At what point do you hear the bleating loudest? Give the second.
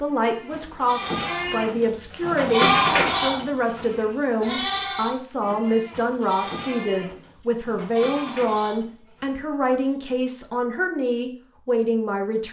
3 s.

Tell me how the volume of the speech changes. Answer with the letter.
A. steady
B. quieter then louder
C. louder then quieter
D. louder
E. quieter
A.